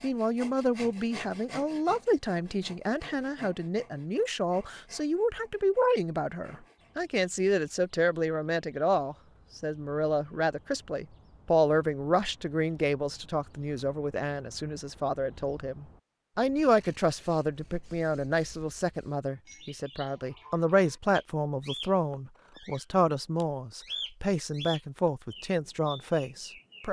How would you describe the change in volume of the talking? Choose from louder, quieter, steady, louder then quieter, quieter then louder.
steady.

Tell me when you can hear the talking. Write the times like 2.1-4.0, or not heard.
0.0-26.8.